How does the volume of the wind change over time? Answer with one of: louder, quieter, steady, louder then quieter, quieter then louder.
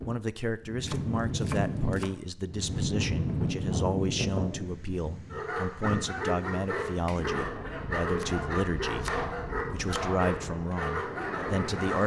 quieter.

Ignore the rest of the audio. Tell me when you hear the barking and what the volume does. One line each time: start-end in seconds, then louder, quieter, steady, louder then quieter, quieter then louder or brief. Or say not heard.
5.3-12.0 steady.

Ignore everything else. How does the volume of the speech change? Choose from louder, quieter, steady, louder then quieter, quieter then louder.
steady.